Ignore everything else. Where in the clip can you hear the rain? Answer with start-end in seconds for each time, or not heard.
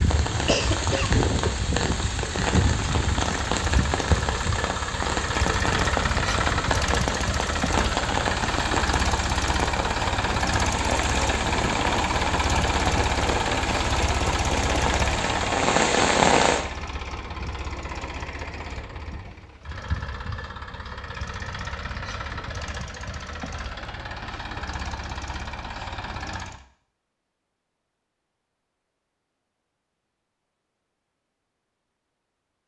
0.0-16.6.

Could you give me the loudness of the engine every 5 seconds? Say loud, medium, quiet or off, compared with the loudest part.
loud, loud, loud, medium, medium, medium, off.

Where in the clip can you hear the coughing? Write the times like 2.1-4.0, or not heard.
0.5-1.1.